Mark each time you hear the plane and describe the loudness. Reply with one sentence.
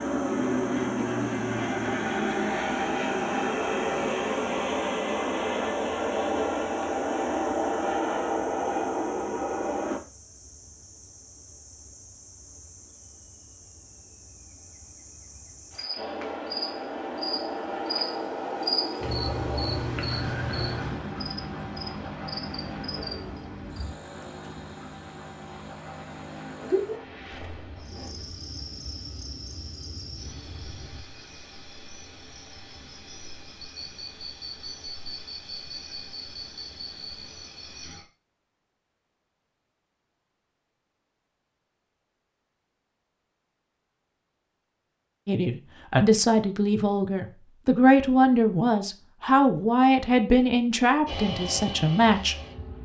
You can hear the plane from 0.0 to 10.0 s, at a steady volume; from 15.9 to 31.1 s, getting quieter; and briefly from 51.0 to 52.8 s.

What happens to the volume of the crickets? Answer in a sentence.
The volume of the crickets goes up, then down.